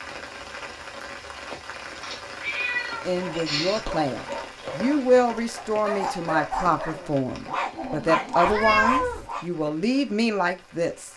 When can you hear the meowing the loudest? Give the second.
9 s.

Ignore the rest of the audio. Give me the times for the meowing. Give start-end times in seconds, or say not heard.
2.0-3.8, 8.4-9.2.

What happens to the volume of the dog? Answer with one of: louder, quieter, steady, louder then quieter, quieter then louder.
louder.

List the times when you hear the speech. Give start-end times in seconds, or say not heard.
3.0-11.1.